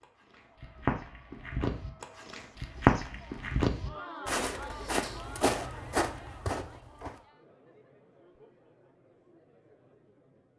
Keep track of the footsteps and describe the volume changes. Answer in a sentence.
The loudness of the footsteps goes up, then down.